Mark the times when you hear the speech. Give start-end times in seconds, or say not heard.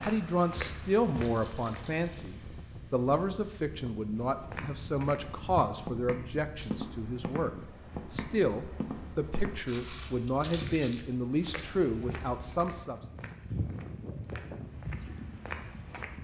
0.0-7.5, 8.1-13.0.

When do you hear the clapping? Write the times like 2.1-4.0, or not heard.
not heard.